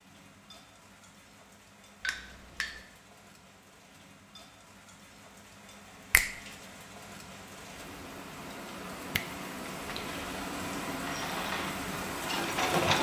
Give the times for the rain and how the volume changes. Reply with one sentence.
You can hear the rain from 0.0 to 12.9 s, getting louder.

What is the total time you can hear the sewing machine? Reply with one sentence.
The sewing machine can be heard for 2 seconds in total.